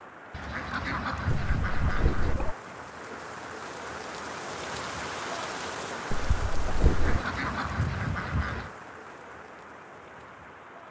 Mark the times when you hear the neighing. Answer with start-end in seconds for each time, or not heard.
not heard.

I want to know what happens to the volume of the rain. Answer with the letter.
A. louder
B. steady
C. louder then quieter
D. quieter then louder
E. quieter
C.